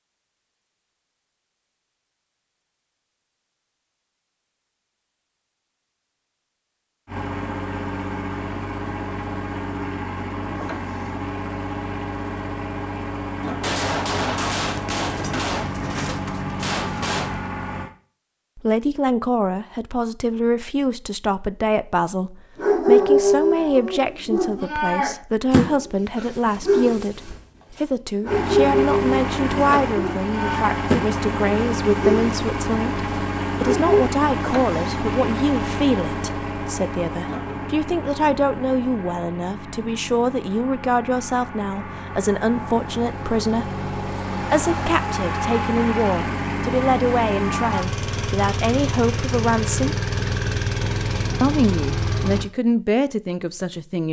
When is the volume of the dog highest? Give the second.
23 s.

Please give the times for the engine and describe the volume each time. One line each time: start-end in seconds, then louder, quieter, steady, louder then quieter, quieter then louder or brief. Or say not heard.
7.0-17.9 steady
28.2-52.5 quieter then louder.